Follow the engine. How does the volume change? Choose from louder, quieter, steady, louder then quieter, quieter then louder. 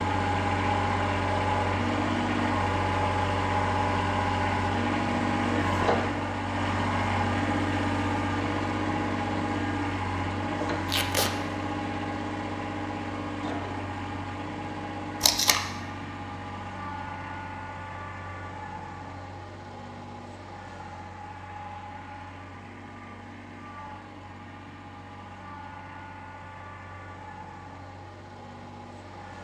quieter.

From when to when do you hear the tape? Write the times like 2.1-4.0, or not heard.
10.8-11.3, 15.2-15.6.